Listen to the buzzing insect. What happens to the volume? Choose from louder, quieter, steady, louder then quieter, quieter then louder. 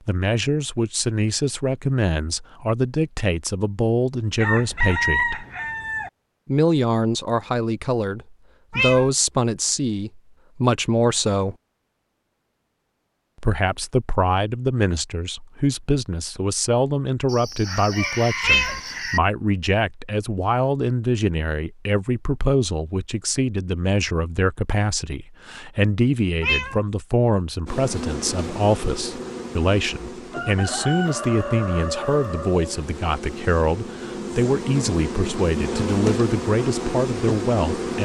quieter then louder.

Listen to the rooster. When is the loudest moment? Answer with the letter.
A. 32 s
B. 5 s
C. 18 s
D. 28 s
B.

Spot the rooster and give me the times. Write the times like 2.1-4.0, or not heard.
4.3-6.1, 17.2-19.2, 30.3-32.9.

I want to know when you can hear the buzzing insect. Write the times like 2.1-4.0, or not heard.
27.6-37.9.